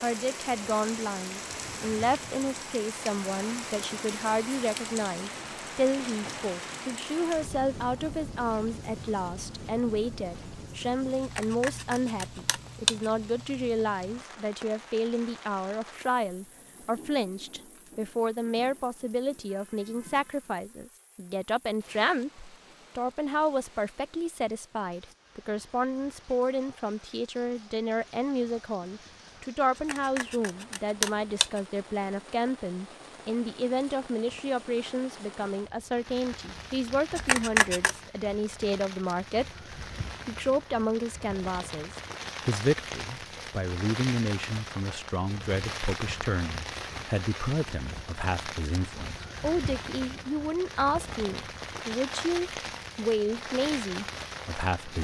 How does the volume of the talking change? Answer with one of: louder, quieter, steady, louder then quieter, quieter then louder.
steady.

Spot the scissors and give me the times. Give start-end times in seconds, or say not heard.
11.3-12.9, 29.9-31.6, 37.1-38.0.